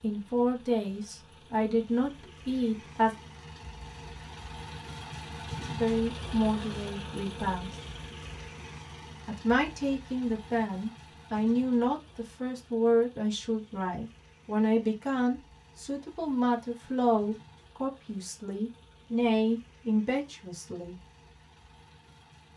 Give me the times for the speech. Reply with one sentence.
The speech can be heard from 0.0 to 3.1 s, from 5.7 to 7.7 s and from 9.2 to 20.9 s.